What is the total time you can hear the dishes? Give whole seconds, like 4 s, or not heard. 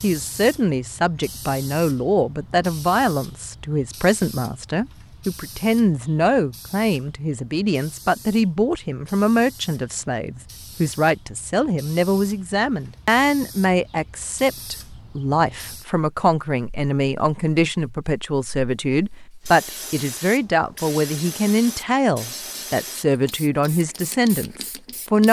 not heard.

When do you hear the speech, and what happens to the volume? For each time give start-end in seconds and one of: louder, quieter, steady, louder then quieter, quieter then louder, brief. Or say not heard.
0.0-25.2 steady.